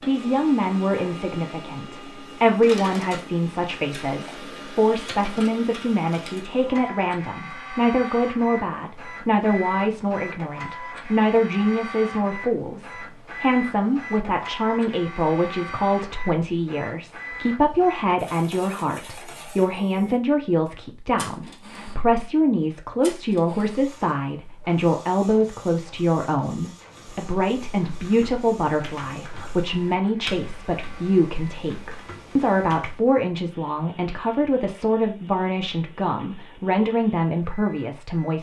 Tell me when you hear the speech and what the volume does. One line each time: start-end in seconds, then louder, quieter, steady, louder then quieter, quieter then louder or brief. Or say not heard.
0.1-38.3 steady.